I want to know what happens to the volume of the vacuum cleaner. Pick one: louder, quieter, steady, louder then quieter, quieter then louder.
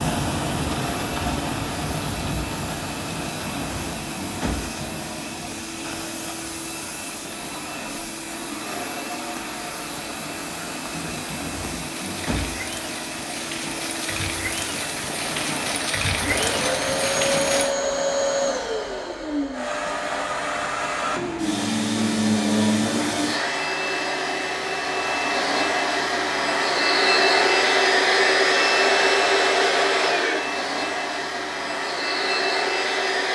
louder.